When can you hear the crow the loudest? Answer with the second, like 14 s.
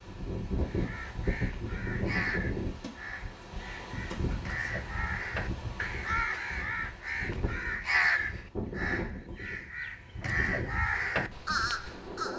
8 s.